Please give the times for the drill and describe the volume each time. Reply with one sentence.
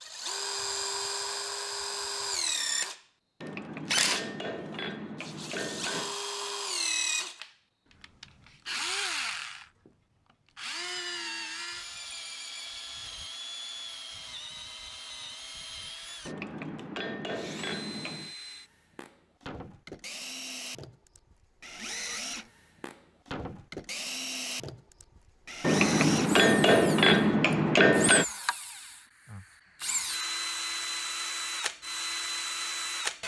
The drill can be heard from 0.0 to 33.2 s, getting quieter then louder.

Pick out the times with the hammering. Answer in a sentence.
The hammering can be heard from 3.4 to 6.2 s, from 16.2 to 18.3 s and from 25.6 to 28.2 s.